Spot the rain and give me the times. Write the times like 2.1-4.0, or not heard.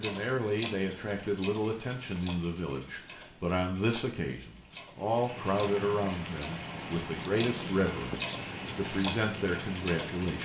5.0-10.4.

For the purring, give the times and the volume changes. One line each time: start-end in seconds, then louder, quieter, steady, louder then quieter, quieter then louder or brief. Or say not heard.
not heard.